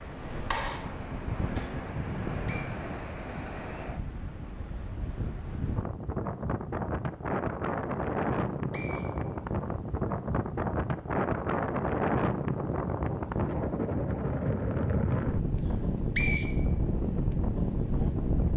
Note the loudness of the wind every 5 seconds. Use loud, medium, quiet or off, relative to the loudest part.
medium, loud, loud, loud.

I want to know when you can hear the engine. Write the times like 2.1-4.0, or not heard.
0.0-1.8.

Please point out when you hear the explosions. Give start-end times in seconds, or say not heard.
not heard.